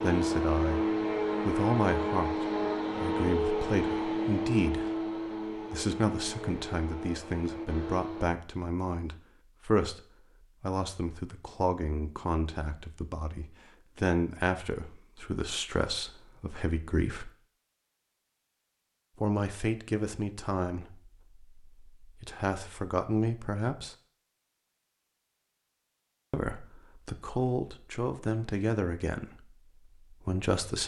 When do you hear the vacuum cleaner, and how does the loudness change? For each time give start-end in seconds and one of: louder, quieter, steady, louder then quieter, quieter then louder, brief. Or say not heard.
0.0-8.2 quieter.